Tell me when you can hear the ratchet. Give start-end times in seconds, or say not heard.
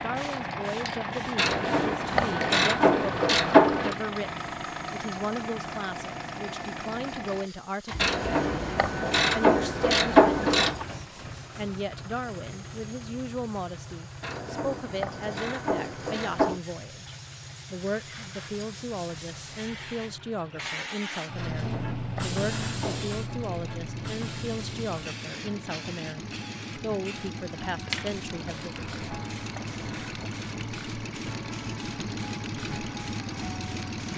1.4-4.0, 8.0-10.8, 14.2-16.6, 21.4-23.1, 28.8-30.3.